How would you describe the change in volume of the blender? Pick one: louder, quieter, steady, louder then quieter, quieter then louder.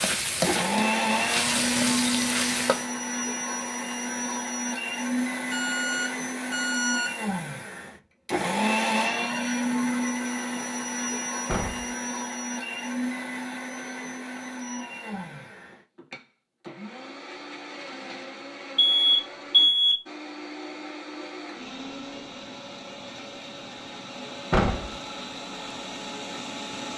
quieter.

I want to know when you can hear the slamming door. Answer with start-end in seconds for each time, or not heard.
11.4-11.9, 24.5-24.9.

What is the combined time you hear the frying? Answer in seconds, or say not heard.
3 s.